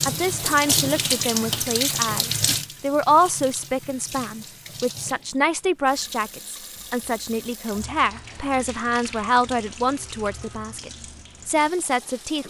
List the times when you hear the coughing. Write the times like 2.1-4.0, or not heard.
not heard.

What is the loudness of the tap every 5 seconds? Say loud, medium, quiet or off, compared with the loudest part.
loud, quiet, quiet.